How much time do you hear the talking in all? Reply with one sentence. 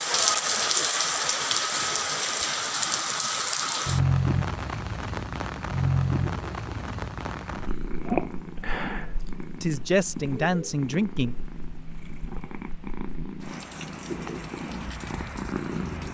The talking can be heard for 2 seconds in total.